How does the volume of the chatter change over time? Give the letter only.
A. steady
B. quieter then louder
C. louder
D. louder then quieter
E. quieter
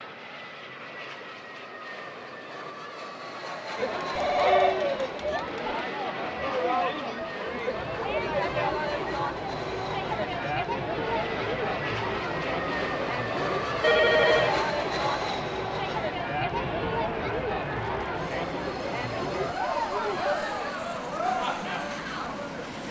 A.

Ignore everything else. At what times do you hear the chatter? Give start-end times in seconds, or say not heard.
3.8-22.8.